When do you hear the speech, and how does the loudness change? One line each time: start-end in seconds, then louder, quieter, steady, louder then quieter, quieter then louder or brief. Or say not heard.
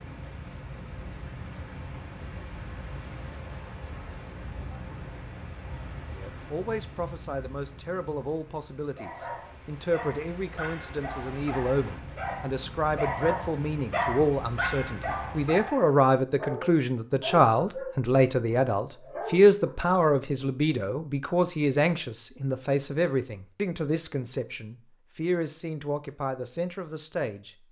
6.1-27.6 louder then quieter.